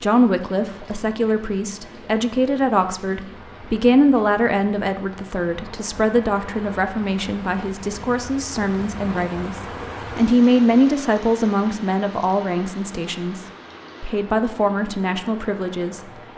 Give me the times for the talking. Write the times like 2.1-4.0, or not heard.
0.0-16.0.